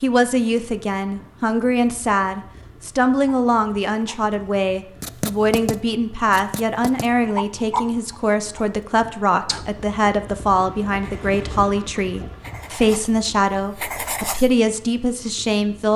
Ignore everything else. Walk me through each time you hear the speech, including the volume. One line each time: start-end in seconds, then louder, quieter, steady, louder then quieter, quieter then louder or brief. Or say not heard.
0.0-15.9 steady.